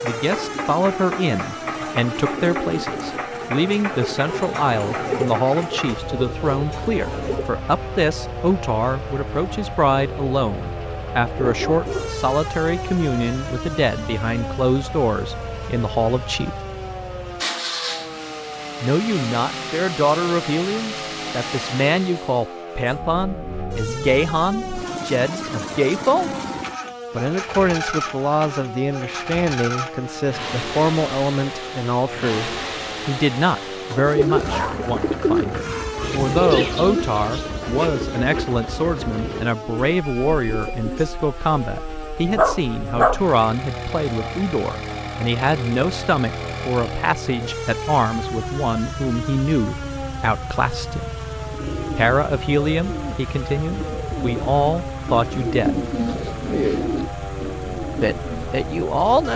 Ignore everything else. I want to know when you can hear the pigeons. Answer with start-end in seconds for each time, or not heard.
0.3-7.5, 34.0-41.1, 51.5-58.6.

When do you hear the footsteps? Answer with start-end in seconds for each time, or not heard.
not heard.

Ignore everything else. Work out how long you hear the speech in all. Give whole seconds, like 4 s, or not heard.
53 s.